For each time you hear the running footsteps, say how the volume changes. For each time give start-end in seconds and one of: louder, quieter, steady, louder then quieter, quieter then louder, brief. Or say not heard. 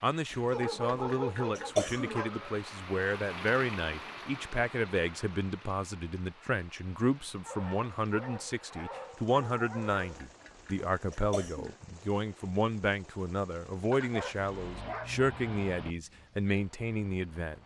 not heard.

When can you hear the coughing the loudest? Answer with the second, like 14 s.
2 s.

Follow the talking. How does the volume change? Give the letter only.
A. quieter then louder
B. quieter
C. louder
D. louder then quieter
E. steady
E.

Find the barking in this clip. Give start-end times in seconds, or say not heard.
0.5-2.3, 7.4-10.2, 13.9-15.9.